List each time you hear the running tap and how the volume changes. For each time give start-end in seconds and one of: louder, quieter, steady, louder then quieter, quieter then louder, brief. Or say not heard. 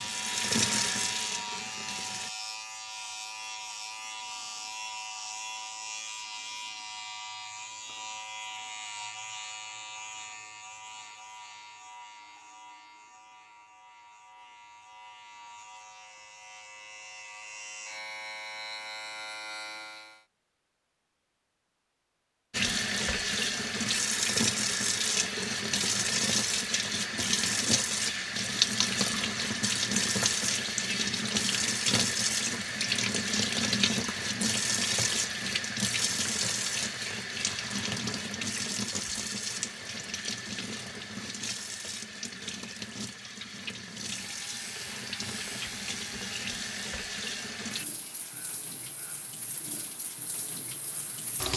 0.0-2.3 brief
22.5-51.5 quieter.